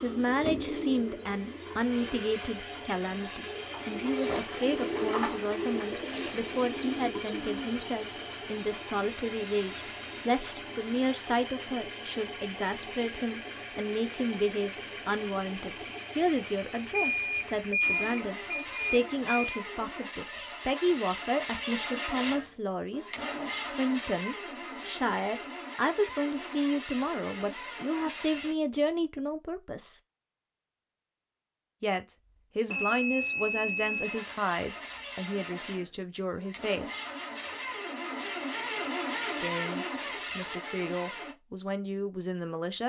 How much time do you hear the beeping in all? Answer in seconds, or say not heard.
4 s.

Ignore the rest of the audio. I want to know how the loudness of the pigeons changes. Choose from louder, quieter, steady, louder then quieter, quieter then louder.
quieter then louder.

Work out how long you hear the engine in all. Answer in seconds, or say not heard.
36 s.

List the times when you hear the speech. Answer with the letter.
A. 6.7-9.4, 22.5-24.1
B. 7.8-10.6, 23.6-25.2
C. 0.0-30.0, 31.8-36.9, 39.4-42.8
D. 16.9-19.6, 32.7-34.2
C.